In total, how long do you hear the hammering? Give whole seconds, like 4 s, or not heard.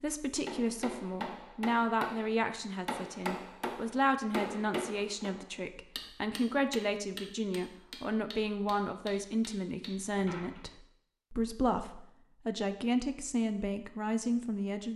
10 s.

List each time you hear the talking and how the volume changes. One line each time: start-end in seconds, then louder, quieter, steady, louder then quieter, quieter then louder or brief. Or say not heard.
0.0-14.9 steady.